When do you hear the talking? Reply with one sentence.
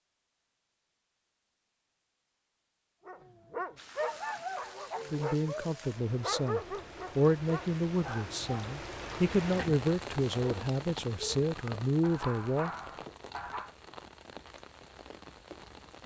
You can hear the talking from 5.1 to 12.7 s.